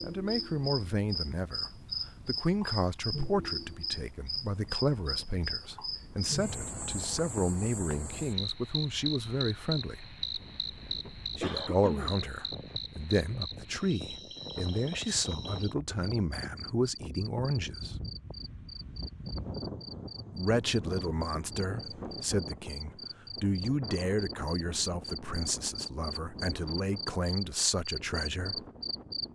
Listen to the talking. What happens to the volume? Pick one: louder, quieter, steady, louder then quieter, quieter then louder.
steady.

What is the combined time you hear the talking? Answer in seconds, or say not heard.
25 s.